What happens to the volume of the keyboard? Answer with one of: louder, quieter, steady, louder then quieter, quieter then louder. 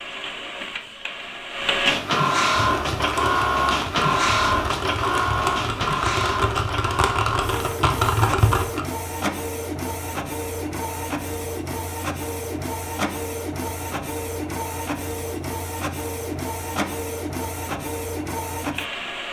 louder.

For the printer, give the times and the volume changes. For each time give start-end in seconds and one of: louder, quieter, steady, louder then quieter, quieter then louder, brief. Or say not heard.
0.0-19.2 quieter.